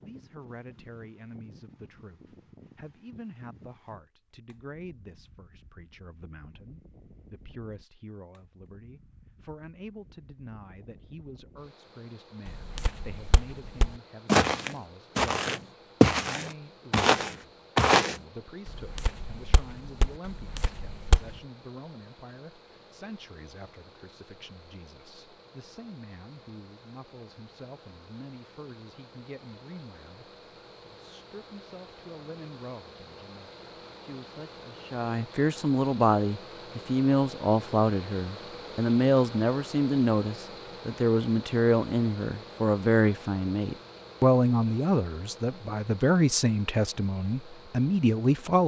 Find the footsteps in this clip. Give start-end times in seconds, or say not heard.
12.4-21.4.